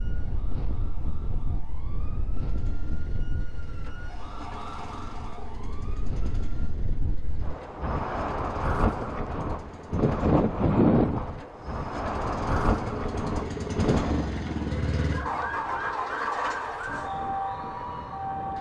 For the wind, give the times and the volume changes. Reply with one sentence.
The wind can be heard from 0.0 to 18.5 s, getting louder then quieter.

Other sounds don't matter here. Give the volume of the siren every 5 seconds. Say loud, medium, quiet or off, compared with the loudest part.
quiet, quiet, off, loud.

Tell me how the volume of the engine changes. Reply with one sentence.
The loudness of the engine goes up.